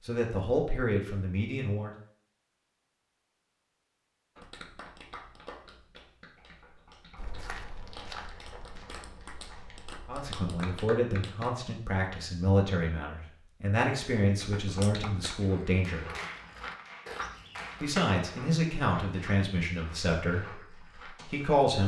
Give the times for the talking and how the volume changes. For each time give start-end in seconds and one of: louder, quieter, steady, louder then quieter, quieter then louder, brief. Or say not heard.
0.1-1.9 brief
10.1-16.1 steady
17.8-21.8 quieter.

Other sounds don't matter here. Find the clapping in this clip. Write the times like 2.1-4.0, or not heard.
4.3-11.6, 14.4-18.2.